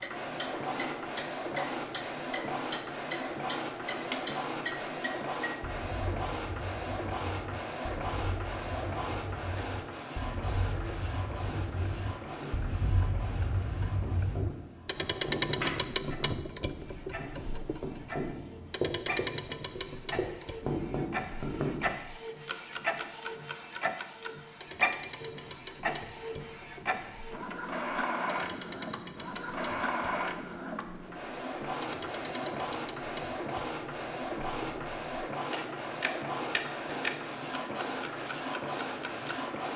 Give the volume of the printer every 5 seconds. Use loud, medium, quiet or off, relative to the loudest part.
loud, loud, medium, medium, loud, loud, loud, loud.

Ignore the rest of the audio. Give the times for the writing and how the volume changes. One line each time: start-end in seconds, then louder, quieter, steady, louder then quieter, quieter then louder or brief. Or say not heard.
10.6-21.9 louder.